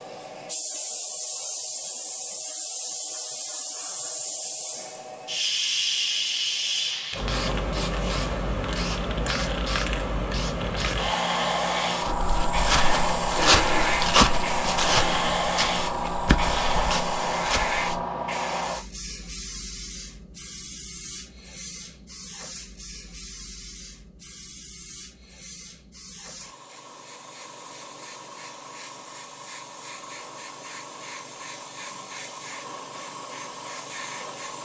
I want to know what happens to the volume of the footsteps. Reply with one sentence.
The volume of the footsteps goes up, then down.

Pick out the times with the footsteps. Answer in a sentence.
You can hear the footsteps from 12.0 to 17.8 s.